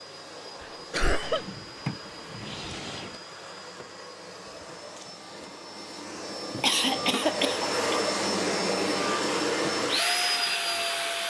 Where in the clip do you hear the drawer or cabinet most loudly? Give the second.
2 s.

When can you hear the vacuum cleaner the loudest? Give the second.
10 s.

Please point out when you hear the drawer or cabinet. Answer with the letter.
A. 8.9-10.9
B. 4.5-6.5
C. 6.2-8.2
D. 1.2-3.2
D.